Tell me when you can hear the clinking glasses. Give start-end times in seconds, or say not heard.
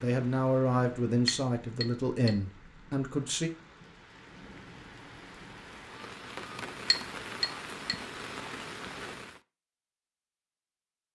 1.2-2.3, 6.9-8.0.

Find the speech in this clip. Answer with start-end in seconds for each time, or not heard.
0.0-3.5.